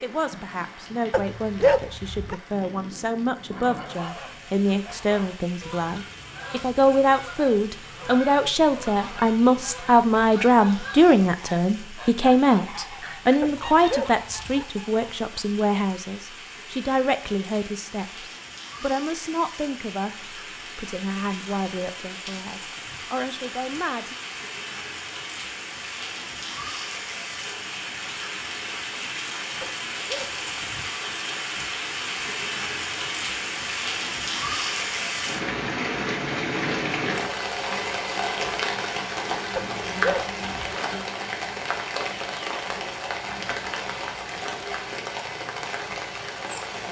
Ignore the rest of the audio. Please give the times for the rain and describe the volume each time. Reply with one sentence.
The rain can be heard from 0.0 to 46.8 s, getting louder.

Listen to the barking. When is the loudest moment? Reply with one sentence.
The loudest moment of the barking is at 2 seconds.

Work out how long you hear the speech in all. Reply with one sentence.
The speech can be heard for 24 seconds in total.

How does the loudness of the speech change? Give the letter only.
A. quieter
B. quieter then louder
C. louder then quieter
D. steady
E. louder
C.